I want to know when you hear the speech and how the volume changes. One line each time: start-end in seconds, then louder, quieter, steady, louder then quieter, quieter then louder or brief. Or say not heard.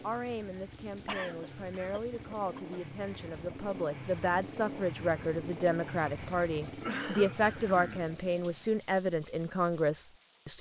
0.0-10.5 louder.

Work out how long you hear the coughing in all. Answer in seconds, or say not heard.
3 s.